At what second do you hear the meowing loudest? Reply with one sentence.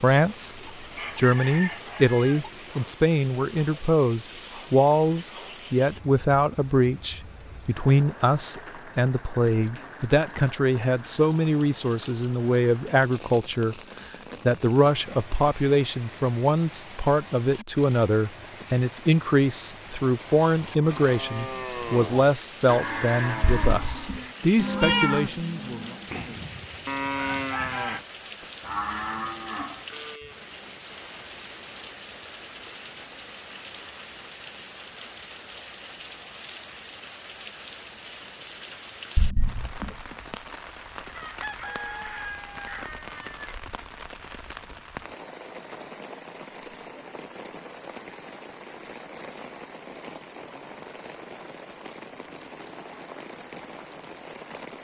The volume of the meowing peaks at 25 seconds.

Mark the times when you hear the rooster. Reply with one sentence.
You can hear the rooster from 0.5 to 2.5 s, from 26.1 to 28.0 s and from 41.1 to 43.5 s.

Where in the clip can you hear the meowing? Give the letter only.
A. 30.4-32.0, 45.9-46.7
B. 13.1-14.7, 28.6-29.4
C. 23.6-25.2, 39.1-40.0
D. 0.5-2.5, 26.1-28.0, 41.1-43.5
C.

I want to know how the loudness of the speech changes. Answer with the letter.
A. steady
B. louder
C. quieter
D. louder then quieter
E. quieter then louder
A.